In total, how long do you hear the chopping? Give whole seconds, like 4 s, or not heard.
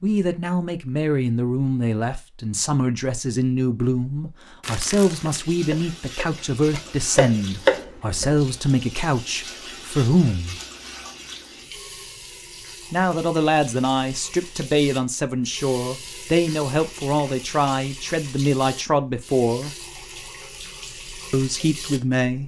3 s.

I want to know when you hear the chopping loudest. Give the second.
8 s.